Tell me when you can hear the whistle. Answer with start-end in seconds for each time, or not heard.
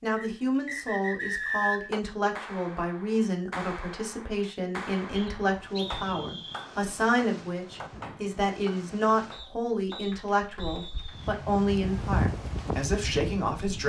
0.1-1.9, 5.2-6.7, 9.3-11.3.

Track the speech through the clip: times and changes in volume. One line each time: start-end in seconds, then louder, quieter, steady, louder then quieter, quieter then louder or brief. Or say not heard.
0.0-13.8 steady.